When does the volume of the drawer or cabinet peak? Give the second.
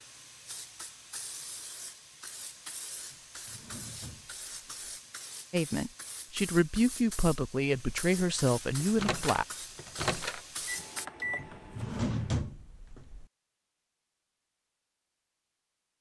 12 s.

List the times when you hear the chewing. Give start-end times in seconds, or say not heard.
not heard.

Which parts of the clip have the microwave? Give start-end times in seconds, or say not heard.
8.8-12.4.